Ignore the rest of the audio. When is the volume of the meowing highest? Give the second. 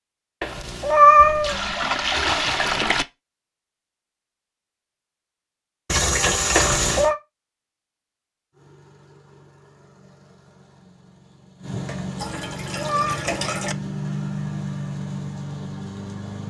1 s.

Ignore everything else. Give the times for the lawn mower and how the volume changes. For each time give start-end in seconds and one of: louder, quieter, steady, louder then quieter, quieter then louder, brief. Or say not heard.
8.5-16.4 louder.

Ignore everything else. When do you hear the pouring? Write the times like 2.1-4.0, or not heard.
1.1-3.0, 5.8-7.1, 11.7-13.8.